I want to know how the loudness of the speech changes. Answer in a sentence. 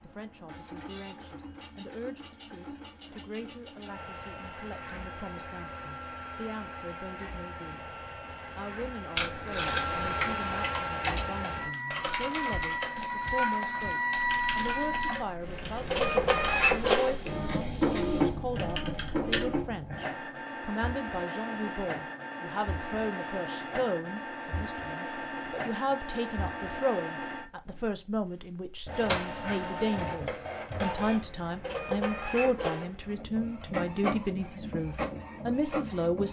The volume of the speech goes up.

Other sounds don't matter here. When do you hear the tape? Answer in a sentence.
You can hear the tape from 9.2 to 10.3 s.